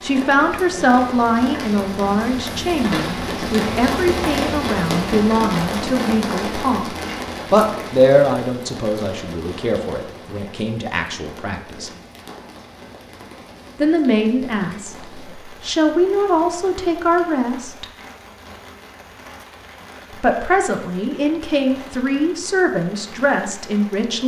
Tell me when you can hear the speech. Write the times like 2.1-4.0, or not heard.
0.0-6.8, 7.5-11.9, 13.8-17.9, 20.2-24.2.